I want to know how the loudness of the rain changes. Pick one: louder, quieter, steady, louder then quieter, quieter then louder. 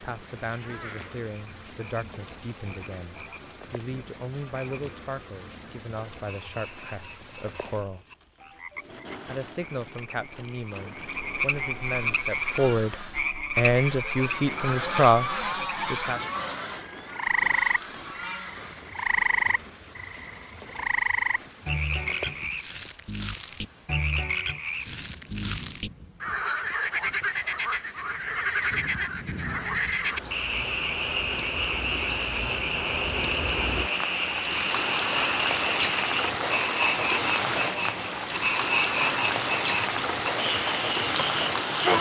louder.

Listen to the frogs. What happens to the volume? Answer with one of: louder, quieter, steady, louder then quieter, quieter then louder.
louder.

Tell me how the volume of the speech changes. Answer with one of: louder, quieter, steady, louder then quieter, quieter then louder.
louder.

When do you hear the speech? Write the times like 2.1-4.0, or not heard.
0.0-8.1, 9.2-16.2.